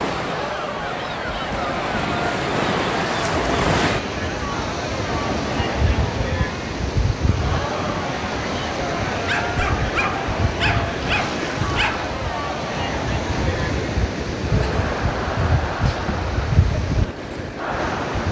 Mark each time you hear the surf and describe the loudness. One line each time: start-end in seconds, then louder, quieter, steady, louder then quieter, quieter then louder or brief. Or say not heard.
0.0-18.2 steady.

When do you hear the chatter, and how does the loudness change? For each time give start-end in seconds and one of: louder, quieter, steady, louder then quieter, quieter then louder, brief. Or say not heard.
0.1-18.2 steady.